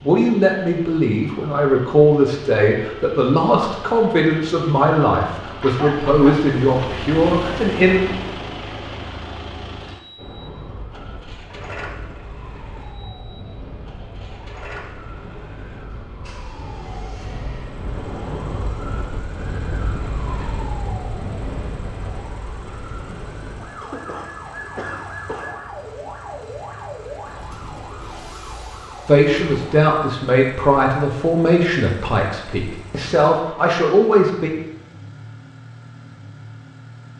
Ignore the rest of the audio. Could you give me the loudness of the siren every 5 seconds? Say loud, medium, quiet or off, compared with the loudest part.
off, off, medium, loud, loud, loud, off, off.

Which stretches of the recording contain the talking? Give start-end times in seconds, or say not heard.
0.0-8.0, 29.1-34.5.